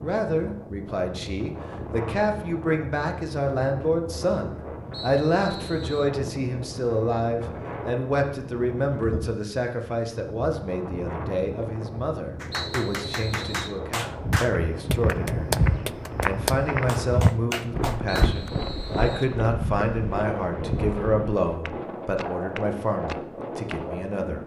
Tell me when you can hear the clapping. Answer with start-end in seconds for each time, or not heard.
12.4-18.5.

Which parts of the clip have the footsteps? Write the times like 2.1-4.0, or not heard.
14.2-23.9.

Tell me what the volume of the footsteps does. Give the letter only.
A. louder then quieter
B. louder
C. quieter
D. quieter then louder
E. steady
C.